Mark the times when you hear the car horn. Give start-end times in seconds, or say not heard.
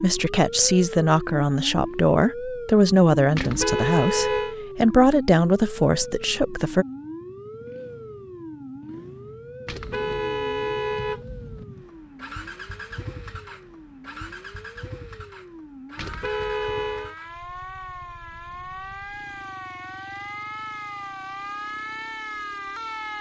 3.4-4.5, 9.7-11.7, 15.9-17.1.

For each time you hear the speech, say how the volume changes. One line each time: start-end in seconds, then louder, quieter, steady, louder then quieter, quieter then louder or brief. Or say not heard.
0.0-6.8 steady.